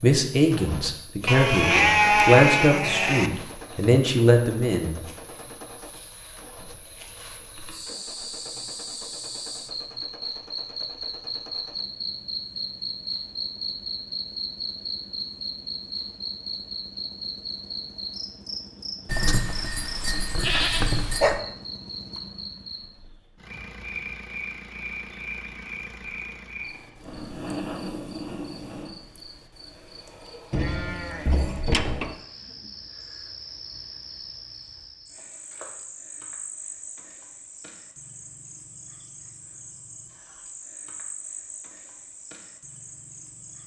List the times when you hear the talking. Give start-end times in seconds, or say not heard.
0.0-5.0.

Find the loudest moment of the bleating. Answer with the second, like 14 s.
2 s.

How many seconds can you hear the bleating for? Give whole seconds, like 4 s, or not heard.
6 s.